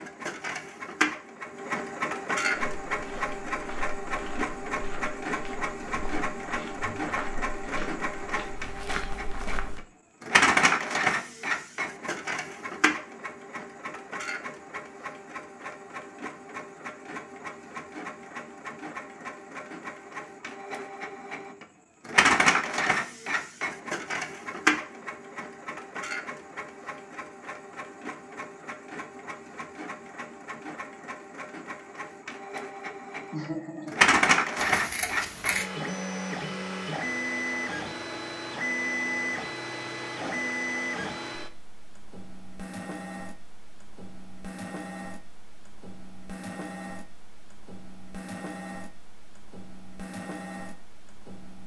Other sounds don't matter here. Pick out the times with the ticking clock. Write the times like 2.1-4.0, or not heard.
not heard.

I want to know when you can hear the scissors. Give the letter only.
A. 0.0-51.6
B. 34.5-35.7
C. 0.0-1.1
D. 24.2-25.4
B.